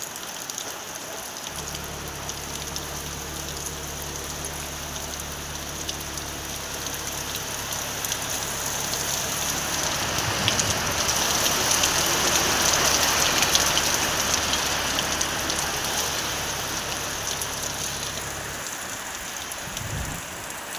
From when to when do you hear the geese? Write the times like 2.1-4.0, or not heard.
not heard.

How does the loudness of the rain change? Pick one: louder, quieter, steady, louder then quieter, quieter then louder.
louder then quieter.